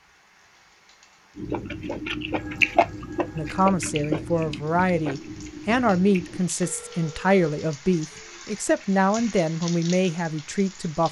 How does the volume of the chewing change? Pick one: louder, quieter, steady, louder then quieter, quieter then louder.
louder then quieter.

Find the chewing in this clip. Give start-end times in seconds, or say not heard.
1.4-6.5.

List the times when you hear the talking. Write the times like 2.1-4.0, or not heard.
3.4-11.0.